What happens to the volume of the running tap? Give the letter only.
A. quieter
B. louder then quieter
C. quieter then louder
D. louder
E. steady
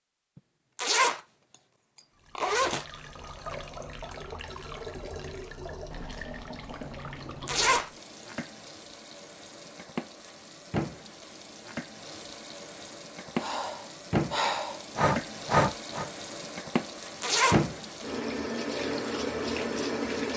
D.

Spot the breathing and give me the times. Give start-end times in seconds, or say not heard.
13.3-16.1.